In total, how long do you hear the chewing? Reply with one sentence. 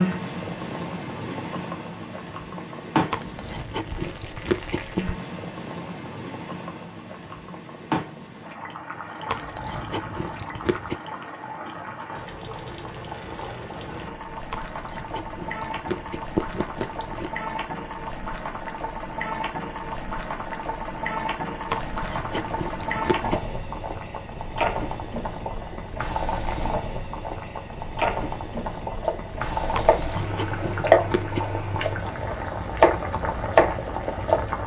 You can hear the chewing for 10 seconds altogether.